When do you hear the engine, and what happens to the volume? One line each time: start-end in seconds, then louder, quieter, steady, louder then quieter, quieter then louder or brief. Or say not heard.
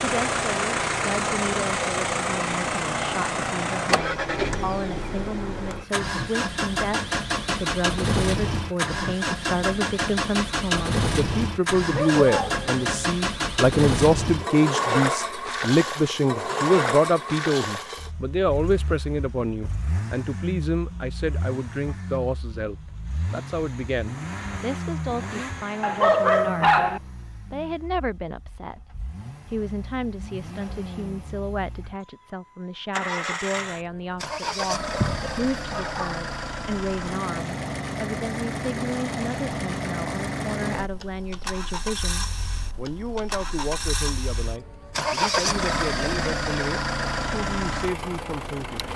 0.0-48.9 quieter then louder.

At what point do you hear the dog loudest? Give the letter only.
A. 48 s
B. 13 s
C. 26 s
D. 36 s
C.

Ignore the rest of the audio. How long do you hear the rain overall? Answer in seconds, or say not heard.
not heard.